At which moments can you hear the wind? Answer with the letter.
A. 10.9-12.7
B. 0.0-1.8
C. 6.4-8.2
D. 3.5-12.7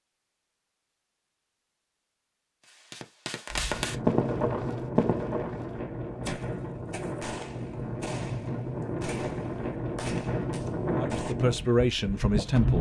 D.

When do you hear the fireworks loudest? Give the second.
4 s.